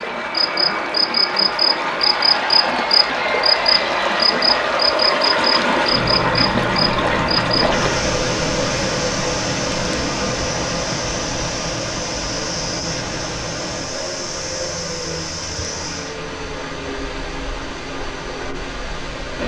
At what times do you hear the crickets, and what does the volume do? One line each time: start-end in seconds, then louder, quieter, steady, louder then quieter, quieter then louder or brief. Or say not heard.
0.3-16.2 quieter.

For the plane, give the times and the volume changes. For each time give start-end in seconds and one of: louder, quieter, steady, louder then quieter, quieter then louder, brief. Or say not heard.
0.0-19.4 quieter.